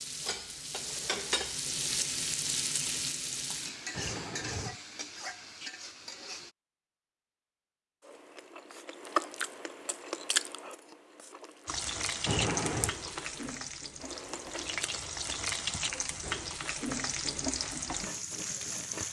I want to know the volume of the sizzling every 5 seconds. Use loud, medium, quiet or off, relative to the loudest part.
loud, medium, loud, loud.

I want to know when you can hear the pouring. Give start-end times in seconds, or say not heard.
3.9-4.8, 12.2-12.9.